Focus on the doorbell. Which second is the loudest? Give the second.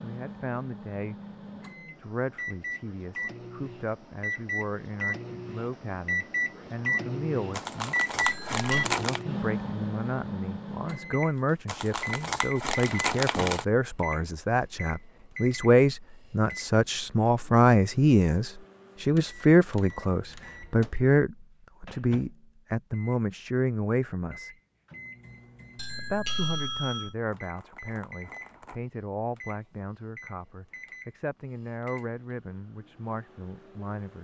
26 s.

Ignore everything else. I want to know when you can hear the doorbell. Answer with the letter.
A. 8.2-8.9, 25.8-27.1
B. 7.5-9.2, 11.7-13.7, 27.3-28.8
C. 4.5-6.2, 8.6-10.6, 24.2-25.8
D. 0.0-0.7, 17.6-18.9
A.